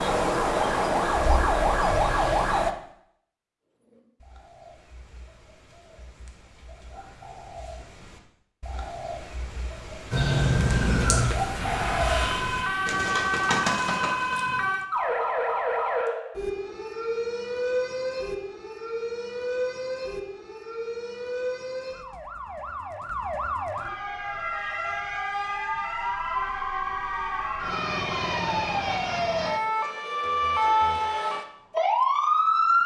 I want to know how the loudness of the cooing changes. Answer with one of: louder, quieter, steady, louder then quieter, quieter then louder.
louder.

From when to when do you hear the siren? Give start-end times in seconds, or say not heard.
0.0-2.8, 10.1-32.8.